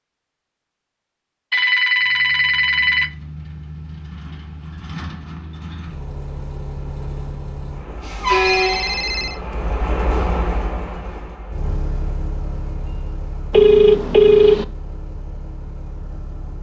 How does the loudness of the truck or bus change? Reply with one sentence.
The loudness of the truck or bus goes up, then down.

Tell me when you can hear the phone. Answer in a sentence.
The phone can be heard from 1.5 to 3.1 s, from 8.4 to 9.4 s and from 13.5 to 14.7 s.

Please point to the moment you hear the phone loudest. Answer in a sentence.
The loudest moment of the phone is at 14 seconds.